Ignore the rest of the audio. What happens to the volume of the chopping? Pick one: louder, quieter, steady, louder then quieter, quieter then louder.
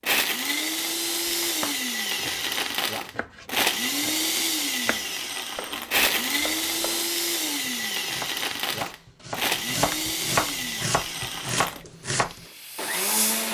louder.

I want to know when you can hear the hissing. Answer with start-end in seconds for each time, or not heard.
11.9-13.5.